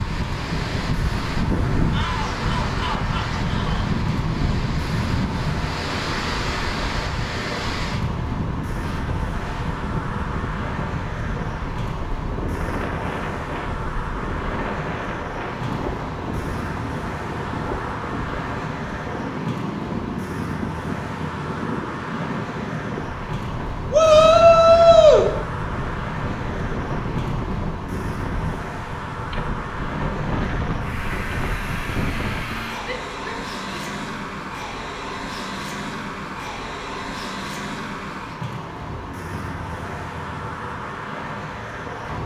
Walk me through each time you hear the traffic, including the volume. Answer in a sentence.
You can hear the traffic from 0.0 to 42.2 s, at a steady volume.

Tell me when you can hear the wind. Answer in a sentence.
The wind can be heard from 0.0 to 32.7 s.